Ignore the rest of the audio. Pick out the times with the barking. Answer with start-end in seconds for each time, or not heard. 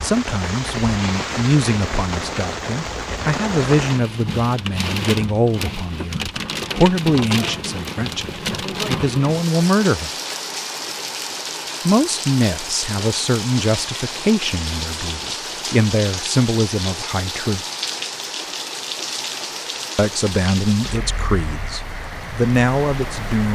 not heard.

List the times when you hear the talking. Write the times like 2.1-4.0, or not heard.
0.0-10.1, 11.8-17.6, 19.9-23.4.